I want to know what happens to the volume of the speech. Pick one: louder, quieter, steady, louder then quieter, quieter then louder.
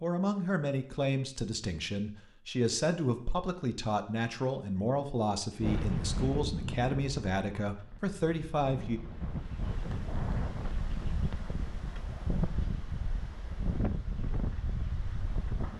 steady.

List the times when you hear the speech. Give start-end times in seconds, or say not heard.
0.0-9.0.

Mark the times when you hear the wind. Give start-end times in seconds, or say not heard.
5.6-15.7.